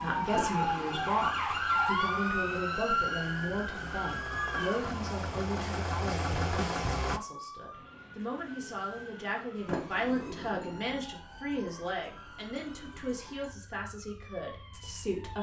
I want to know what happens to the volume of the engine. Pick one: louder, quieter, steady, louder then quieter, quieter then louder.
louder.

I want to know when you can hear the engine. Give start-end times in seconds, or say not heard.
0.0-7.2.